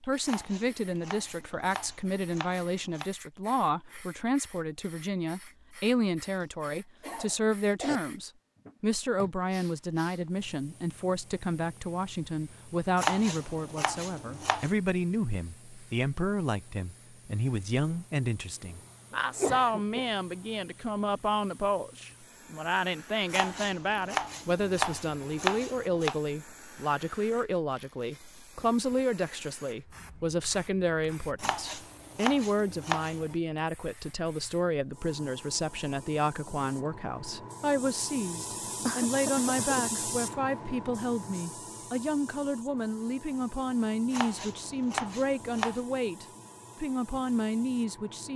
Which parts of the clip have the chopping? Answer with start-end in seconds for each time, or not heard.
0.2-3.1, 12.9-14.7, 23.3-26.2, 31.4-33.4, 44.1-45.8.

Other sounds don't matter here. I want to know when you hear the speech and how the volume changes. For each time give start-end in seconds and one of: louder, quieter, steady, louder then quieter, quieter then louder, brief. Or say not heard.
0.0-48.3 steady.